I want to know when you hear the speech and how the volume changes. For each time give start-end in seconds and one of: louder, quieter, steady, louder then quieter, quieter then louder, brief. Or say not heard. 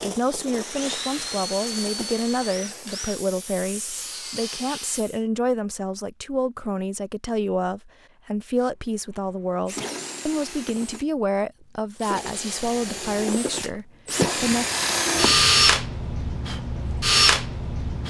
0.0-14.7 steady.